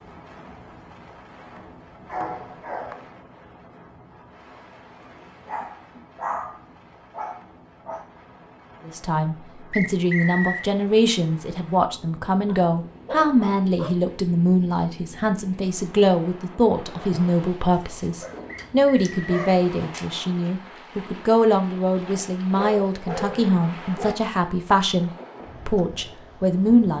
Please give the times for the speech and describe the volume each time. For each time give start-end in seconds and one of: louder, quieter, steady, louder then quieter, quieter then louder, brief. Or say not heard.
8.8-26.9 steady.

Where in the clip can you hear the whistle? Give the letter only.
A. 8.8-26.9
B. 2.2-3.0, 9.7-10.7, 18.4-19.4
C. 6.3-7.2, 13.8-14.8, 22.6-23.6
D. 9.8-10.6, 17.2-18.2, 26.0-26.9
B.